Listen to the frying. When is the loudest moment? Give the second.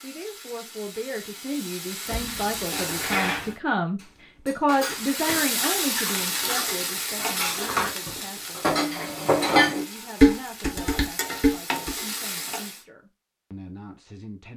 6 s.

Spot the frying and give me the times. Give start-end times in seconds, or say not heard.
0.0-3.5, 4.8-12.8.